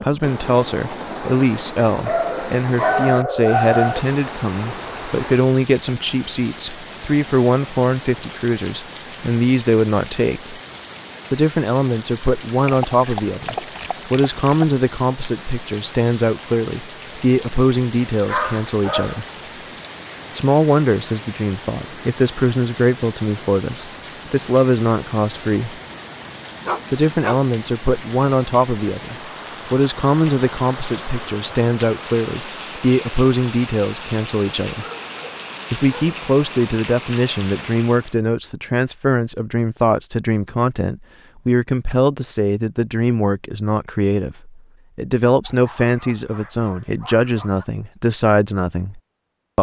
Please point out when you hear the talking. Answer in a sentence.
You can hear the talking from 0.0 to 10.6 s, from 11.3 to 19.2 s, from 20.3 to 25.8 s, from 26.9 to 34.9 s and from 35.7 to 49.5 s.